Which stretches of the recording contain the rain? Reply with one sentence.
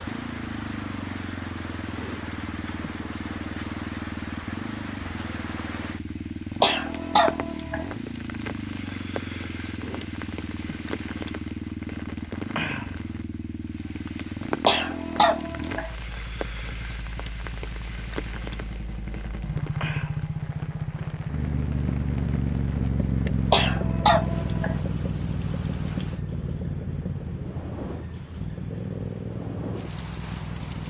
The rain can be heard from 0.0 to 30.8 s.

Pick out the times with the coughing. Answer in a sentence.
You can hear the coughing from 6.6 to 7.8 s, from 14.7 to 15.9 s and from 23.5 to 24.8 s.